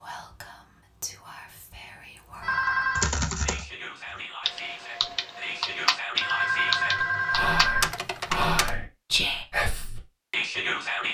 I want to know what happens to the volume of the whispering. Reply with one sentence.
The volume of the whispering goes up.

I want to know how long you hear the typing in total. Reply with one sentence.
You can hear the typing for 5 seconds altogether.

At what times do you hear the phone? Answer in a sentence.
The phone can be heard from 2.4 to 3.1 s and from 6.2 to 7.9 s.